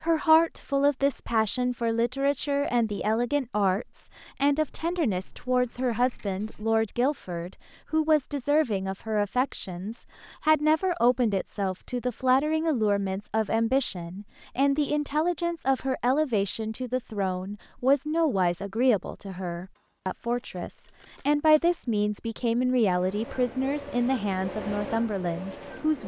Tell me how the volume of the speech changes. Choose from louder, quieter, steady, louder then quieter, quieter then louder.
steady.